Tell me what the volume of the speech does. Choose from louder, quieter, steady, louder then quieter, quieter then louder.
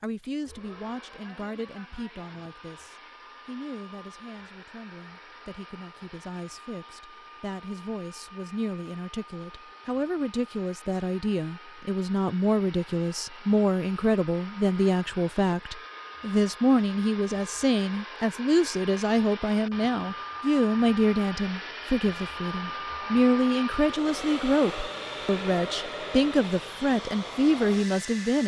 louder.